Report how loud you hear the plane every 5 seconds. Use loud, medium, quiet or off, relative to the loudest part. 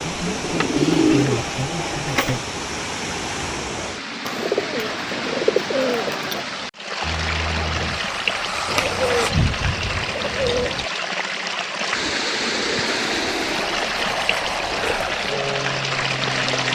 off, loud, loud, loud.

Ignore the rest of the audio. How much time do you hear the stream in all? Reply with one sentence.
You can hear the stream for 17 seconds altogether.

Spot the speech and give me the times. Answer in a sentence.
You can hear the speech from 0.0 to 2.4 s.